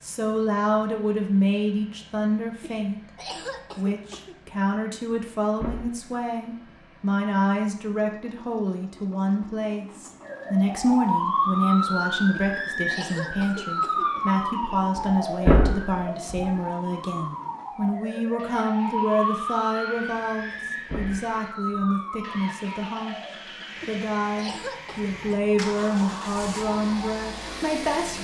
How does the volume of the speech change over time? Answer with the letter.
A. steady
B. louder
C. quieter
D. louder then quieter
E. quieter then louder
A.